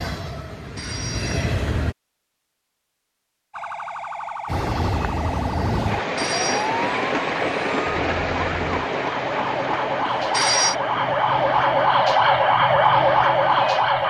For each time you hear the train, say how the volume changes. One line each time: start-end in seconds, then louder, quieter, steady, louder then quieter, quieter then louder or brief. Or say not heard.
0.0-1.9 brief
4.5-14.0 quieter.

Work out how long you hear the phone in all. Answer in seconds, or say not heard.
2 s.